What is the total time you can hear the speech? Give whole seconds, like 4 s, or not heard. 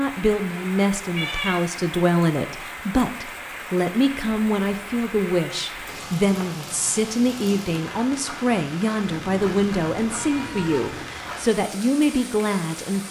13 s.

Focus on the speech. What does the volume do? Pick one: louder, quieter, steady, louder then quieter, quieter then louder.
steady.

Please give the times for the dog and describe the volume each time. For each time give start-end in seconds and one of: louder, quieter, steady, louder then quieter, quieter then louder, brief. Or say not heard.
not heard.